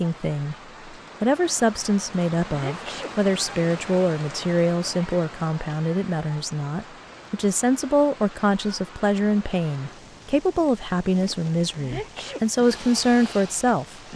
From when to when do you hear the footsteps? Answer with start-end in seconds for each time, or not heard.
not heard.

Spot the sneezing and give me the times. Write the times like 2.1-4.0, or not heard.
2.5-3.1, 11.8-12.4.